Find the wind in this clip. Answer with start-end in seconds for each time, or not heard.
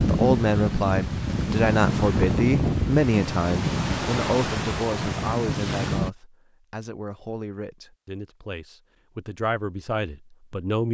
0.0-6.1.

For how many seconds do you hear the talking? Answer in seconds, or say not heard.
11 s.